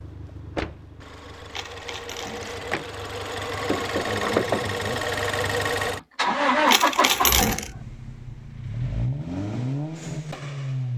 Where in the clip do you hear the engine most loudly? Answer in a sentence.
The volume of the engine peaks at 7 seconds.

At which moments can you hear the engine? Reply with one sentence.
You can hear the engine from 0.0 to 10.9 s.